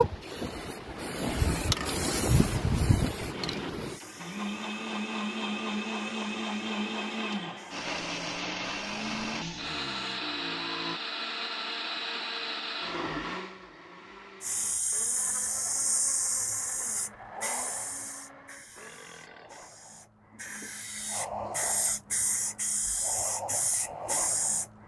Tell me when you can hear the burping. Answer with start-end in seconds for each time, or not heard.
1.4-1.9, 9.1-11.0, 18.4-19.8.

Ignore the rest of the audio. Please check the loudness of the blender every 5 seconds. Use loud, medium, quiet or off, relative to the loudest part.
loud, loud, loud, quiet, off.